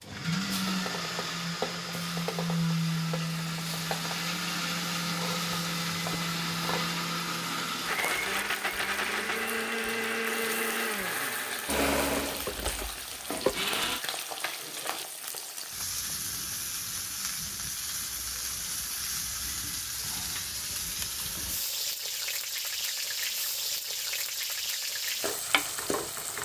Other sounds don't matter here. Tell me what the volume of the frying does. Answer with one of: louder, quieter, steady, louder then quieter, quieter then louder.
louder.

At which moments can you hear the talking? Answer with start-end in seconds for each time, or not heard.
not heard.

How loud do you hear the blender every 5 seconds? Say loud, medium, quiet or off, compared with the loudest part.
loud, loud, loud, off, off, off.